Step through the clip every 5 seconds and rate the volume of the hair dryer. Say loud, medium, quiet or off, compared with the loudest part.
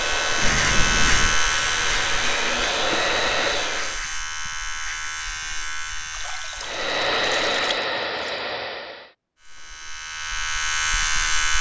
loud, loud, off.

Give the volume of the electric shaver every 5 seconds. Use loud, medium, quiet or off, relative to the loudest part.
loud, medium, loud.